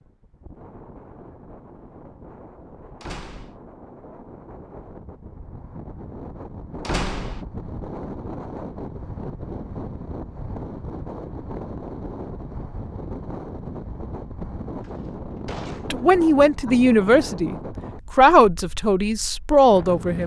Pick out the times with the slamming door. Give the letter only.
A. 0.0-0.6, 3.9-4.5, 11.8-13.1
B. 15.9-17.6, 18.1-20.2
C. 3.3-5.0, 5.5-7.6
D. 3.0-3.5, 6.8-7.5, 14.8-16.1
D.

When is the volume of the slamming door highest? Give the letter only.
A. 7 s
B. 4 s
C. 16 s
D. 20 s
A.